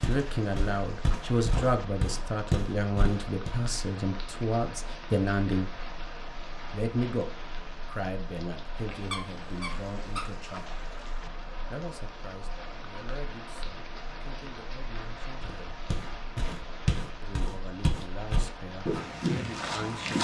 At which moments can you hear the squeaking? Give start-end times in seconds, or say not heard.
8.9-10.3.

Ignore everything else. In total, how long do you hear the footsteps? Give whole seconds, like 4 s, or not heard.
8 s.